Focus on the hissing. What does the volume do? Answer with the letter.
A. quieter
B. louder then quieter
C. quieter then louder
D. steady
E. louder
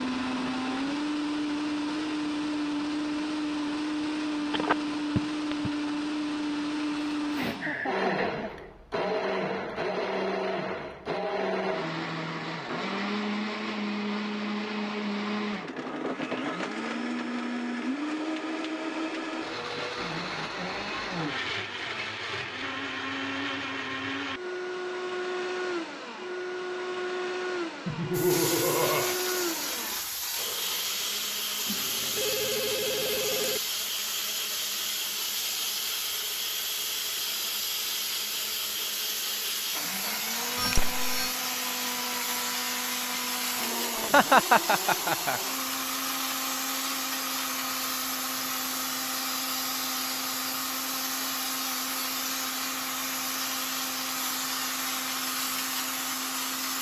D.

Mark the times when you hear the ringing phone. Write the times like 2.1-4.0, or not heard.
4.5-5.7, 31.6-33.6, 40.5-41.4.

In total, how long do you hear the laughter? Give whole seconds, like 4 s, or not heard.
4 s.